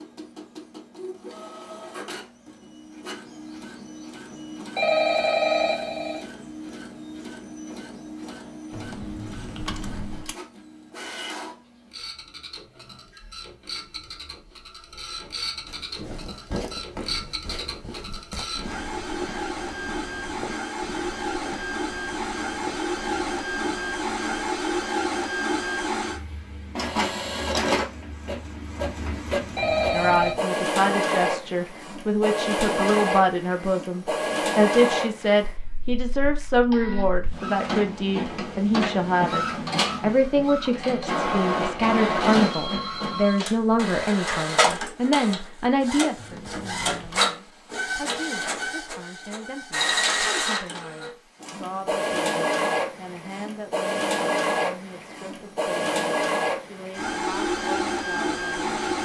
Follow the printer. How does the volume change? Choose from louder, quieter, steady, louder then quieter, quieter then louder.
louder.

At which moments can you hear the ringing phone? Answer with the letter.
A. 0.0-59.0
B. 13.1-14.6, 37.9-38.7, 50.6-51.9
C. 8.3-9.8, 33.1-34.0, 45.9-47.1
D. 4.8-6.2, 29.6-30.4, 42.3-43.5
D.